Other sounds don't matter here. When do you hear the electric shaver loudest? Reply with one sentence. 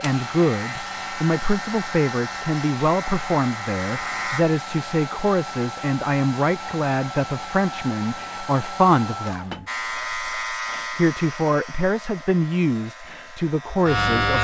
The loudest moment of the electric shaver is at 14 seconds.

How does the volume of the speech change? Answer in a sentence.
The loudness of the speech stays about the same.